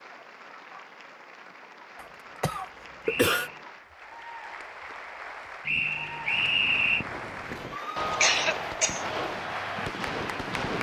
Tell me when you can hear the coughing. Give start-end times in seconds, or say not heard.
2.0-3.5, 8.1-9.1.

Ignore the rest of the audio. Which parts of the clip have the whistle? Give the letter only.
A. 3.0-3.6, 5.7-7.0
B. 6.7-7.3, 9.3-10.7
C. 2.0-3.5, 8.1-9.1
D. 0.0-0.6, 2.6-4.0
A.